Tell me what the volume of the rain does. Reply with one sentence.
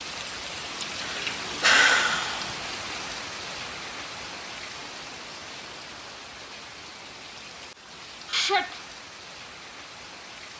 The loudness of the rain goes down.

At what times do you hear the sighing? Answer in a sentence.
The sighing can be heard from 0.8 to 2.5 s and from 8.2 to 8.8 s.